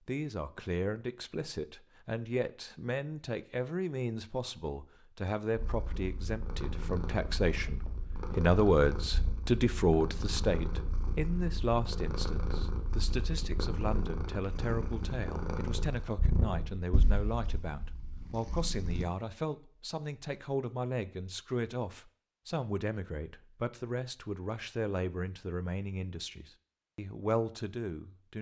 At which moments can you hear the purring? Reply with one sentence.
You can hear the purring from 5.5 to 19.1 s.